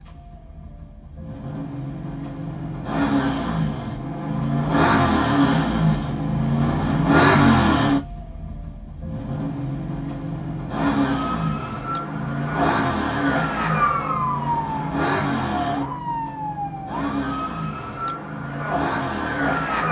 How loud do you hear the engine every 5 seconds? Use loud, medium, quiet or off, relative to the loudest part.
medium, loud, medium, medium.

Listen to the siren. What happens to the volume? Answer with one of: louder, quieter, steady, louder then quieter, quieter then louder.
louder then quieter.